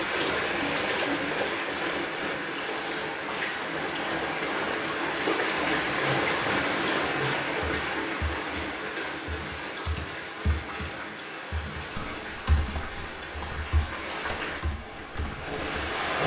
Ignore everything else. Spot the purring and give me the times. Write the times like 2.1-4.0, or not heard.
not heard.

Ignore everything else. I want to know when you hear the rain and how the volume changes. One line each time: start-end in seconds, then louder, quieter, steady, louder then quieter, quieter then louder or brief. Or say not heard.
0.0-16.2 quieter.